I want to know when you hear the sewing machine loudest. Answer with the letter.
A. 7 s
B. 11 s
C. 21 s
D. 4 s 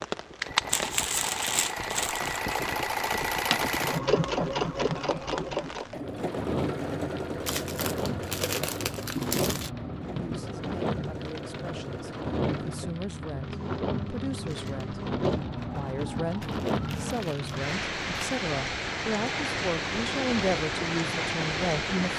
D.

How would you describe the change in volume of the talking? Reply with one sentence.
The volume of the talking goes up.